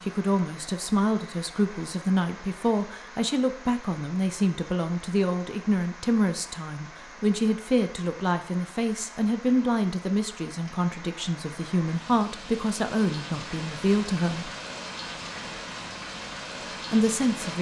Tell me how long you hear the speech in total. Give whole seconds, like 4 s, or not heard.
15 s.